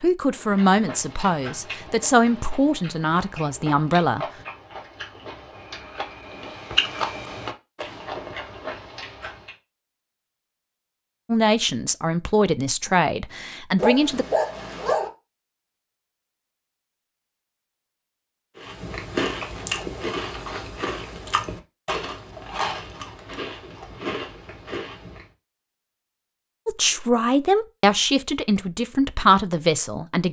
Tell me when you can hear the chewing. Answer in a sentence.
You can hear the chewing from 0.3 to 9.6 s and from 18.6 to 25.2 s.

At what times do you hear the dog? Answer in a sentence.
You can hear the dog from 13.8 to 15.1 s.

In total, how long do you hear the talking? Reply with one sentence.
You can hear the talking for 11 seconds altogether.